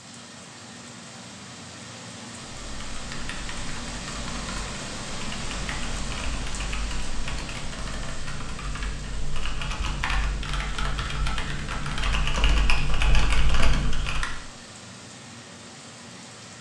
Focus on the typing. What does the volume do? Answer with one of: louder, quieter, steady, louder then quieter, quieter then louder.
louder.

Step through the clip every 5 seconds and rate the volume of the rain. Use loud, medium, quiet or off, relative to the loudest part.
loud, loud, medium, medium.